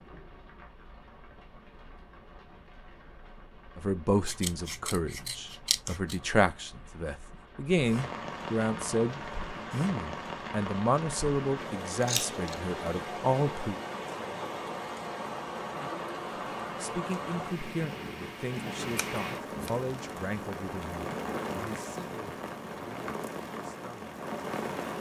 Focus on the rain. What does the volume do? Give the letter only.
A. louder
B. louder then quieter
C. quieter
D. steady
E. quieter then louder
A.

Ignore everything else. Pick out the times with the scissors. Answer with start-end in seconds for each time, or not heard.
4.2-6.2, 12.0-12.6, 18.9-19.7.